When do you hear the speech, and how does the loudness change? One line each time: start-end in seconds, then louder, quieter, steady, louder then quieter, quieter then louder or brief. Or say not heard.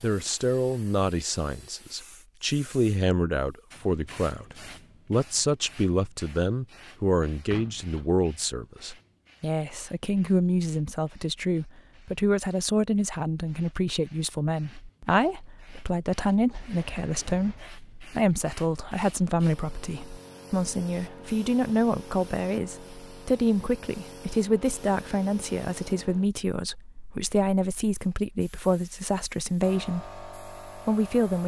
0.0-31.4 steady.